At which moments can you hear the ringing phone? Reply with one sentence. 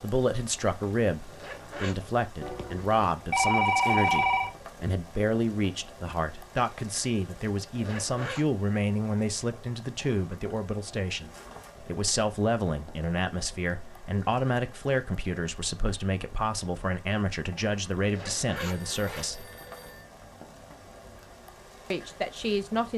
The ringing phone can be heard from 2.4 to 4.5 s and from 18.6 to 20.1 s.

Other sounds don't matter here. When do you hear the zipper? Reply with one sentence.
The zipper can be heard from 1.2 to 1.9 s, from 7.7 to 8.4 s and from 18.0 to 19.8 s.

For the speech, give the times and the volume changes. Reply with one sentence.
The speech can be heard from 0.0 to 19.4 s, at a steady volume; and briefly from 21.9 to 22.9 s.